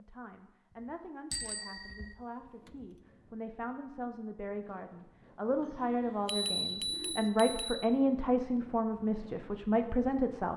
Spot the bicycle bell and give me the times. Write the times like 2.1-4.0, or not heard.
1.3-2.1, 6.2-7.8.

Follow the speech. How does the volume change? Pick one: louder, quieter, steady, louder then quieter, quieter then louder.
louder.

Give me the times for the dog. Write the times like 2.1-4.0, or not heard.
not heard.